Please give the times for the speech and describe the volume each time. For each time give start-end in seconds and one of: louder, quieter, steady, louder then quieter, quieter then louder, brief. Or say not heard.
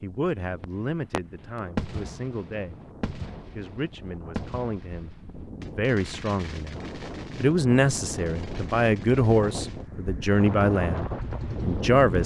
0.0-2.8 brief
3.5-12.2 louder.